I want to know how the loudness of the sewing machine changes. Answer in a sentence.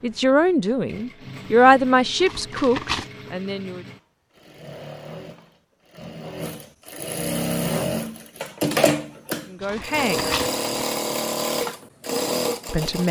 The volume of the sewing machine goes up.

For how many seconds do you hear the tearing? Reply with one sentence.
The tearing can be heard for 2 seconds in total.